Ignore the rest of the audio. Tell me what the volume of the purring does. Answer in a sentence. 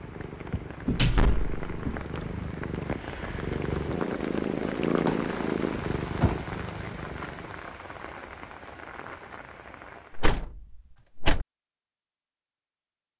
The loudness of the purring goes up, then down.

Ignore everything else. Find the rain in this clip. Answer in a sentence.
You can hear the rain from 0.0 to 10.4 s.